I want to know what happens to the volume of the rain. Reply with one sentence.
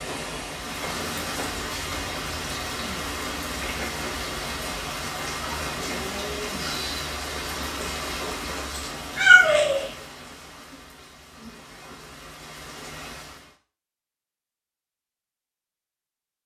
The volume of the rain goes down.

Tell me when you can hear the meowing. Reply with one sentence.
The meowing can be heard from 8.8 to 9.9 s.